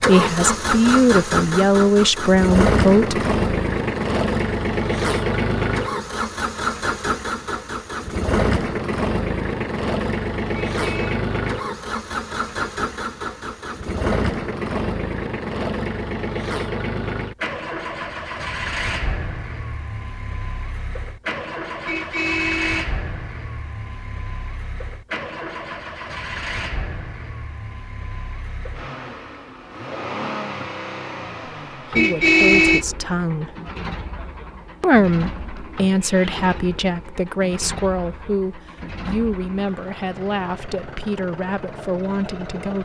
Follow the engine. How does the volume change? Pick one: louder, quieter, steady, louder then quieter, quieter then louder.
quieter.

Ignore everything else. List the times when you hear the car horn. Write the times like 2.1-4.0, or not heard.
10.7-11.2, 21.9-22.9, 31.9-32.9.